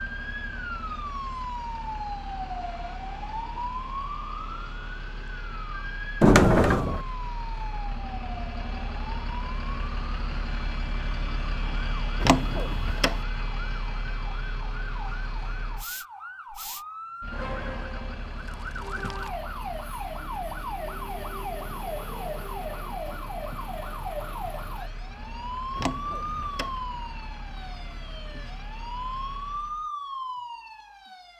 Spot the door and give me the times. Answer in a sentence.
The door can be heard from 6.2 to 7.0 s, from 12.2 to 13.2 s and from 25.8 to 26.8 s.